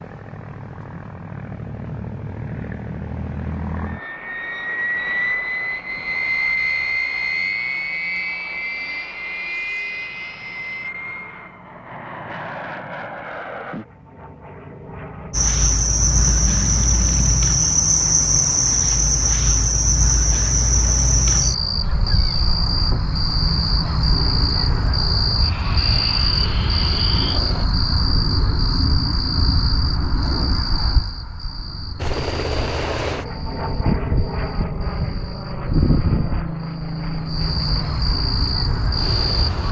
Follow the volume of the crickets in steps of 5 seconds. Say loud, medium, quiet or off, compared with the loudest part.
off, off, off, loud, loud, loud, medium, medium.